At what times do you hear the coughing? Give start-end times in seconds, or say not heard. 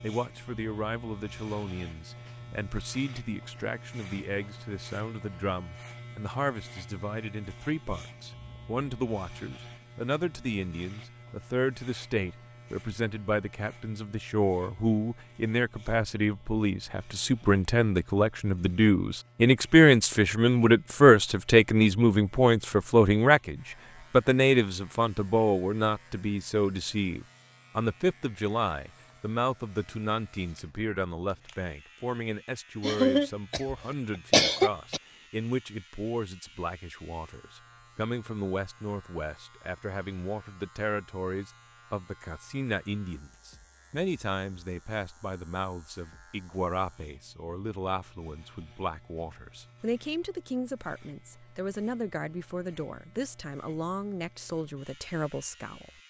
32.8-35.0.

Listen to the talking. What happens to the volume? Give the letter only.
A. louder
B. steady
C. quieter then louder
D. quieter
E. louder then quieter
E.